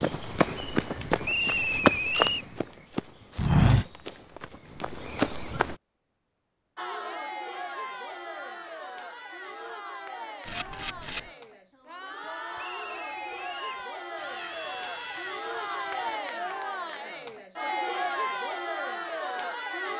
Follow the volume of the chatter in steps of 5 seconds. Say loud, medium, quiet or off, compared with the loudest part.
off, medium, medium, loud.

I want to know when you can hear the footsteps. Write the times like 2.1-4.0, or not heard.
0.0-5.8.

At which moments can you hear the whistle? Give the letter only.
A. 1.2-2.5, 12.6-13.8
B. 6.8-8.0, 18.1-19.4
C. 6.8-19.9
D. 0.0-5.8
A.